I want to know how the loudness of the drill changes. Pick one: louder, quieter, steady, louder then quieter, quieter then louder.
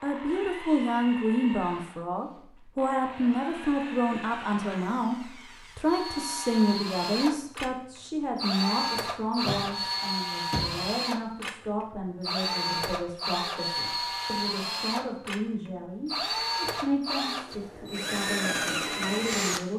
louder.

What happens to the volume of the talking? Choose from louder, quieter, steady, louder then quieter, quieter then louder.
quieter.